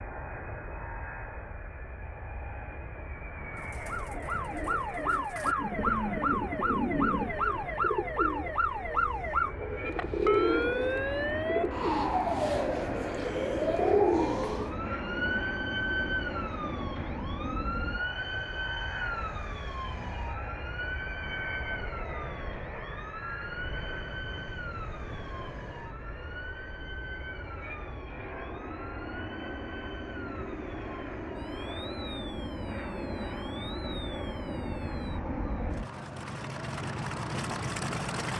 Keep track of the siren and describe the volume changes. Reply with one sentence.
The volume of the siren goes down.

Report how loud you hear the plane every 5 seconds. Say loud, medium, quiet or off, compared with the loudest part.
medium, medium, loud, loud, medium, medium, loud, loud.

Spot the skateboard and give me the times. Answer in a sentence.
The skateboard can't be heard in this clip.